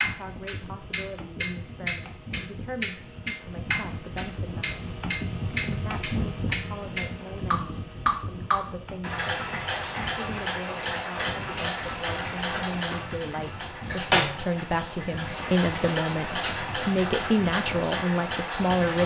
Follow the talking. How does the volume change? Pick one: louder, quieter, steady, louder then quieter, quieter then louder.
louder.